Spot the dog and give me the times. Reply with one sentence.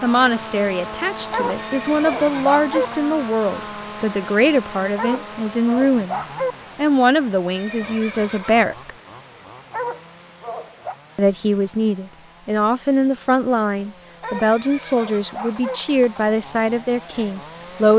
The dog can be heard from 1.3 to 2.9 s, from 5.0 to 6.5 s, from 9.3 to 10.9 s and from 14.2 to 15.8 s.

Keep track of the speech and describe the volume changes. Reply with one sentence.
The loudness of the speech stays about the same.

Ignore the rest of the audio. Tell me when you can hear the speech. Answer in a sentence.
You can hear the speech from 0.0 to 8.9 s and from 11.2 to 17.9 s.